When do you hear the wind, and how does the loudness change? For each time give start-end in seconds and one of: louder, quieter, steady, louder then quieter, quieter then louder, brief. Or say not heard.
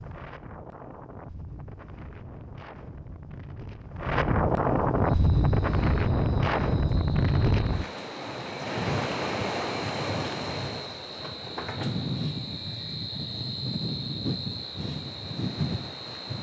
0.0-16.3 louder then quieter.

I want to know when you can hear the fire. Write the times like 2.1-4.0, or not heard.
not heard.